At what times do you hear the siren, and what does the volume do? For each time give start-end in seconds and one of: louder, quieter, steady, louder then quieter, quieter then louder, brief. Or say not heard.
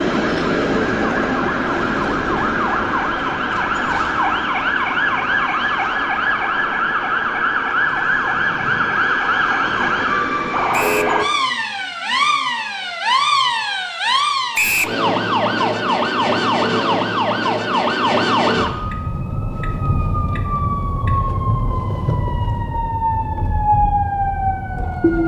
0.0-25.2 steady.